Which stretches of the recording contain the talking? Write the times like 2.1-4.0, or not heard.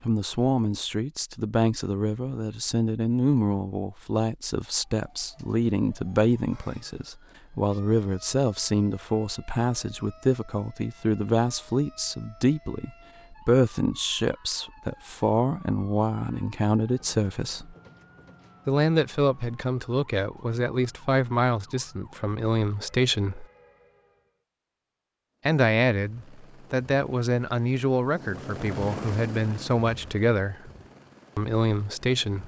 0.0-17.8, 18.6-23.4, 25.4-30.7, 31.4-32.4.